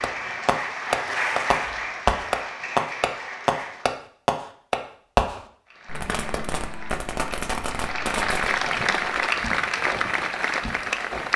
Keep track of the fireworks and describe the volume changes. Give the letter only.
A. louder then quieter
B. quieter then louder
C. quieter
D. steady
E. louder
C.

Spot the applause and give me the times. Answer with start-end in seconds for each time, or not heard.
0.0-4.0, 5.7-11.3.